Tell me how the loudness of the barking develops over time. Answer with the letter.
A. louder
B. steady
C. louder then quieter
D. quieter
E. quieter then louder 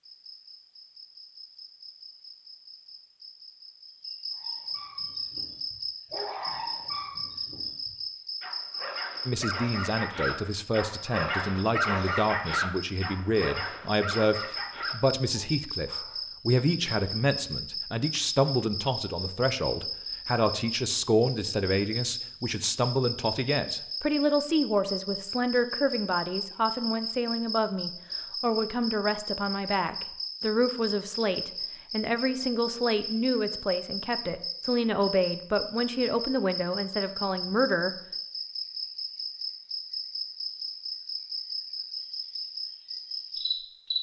C.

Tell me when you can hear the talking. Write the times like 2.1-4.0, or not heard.
9.2-38.0.